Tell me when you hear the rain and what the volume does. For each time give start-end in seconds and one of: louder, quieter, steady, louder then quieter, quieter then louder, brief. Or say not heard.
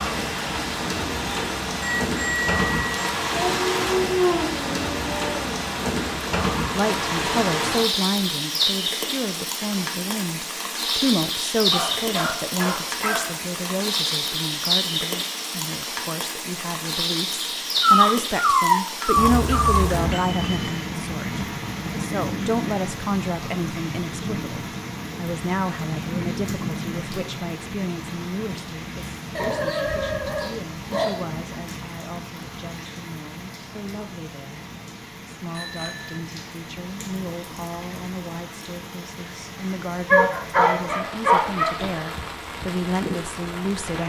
0.0-44.0 quieter.